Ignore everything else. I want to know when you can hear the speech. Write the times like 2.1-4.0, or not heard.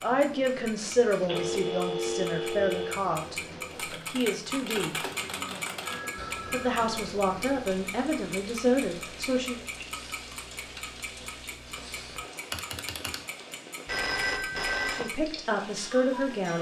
0.0-5.0, 6.5-9.7, 14.9-16.5.